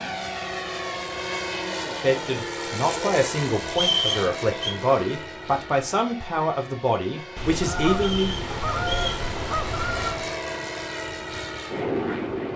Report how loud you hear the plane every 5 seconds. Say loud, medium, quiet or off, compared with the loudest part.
loud, medium, loud.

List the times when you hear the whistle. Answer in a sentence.
You can hear the whistle from 3.7 to 4.8 s and from 8.0 to 9.2 s.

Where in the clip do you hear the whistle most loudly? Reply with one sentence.
The volume of the whistle peaks at 4 seconds.